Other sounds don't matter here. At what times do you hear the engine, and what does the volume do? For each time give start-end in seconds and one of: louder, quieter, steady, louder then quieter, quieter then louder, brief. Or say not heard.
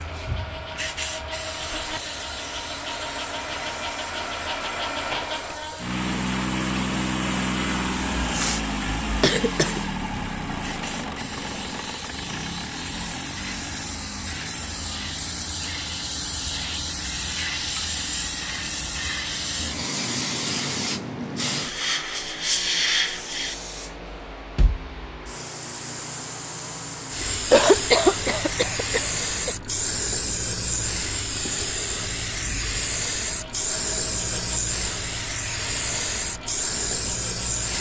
0.0-37.7 quieter.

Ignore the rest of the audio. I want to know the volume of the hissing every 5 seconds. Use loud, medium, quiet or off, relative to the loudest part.
medium, quiet, medium, loud, loud, loud, loud, loud.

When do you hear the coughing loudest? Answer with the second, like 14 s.
28 s.